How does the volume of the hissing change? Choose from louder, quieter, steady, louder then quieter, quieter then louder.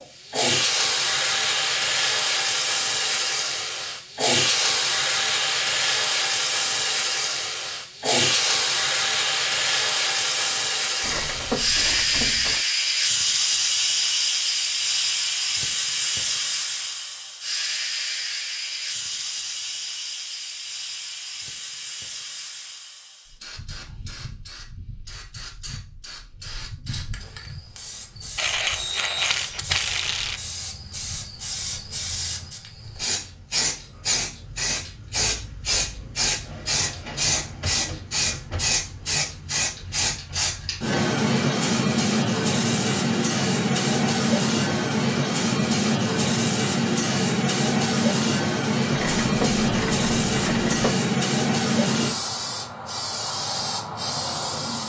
quieter then louder.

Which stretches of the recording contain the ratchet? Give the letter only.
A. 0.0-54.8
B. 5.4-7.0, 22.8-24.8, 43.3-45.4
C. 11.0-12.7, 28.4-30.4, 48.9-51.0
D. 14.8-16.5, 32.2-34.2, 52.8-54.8
C.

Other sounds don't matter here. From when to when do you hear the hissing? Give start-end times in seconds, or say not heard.
0.0-54.8.